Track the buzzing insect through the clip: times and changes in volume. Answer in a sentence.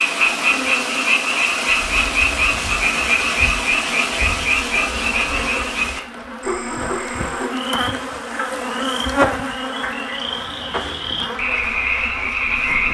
You can hear the buzzing insect from 0.0 to 12.8 s, getting louder then quieter.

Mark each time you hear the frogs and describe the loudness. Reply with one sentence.
You can hear the frogs from 0.0 to 12.8 s, getting quieter then louder.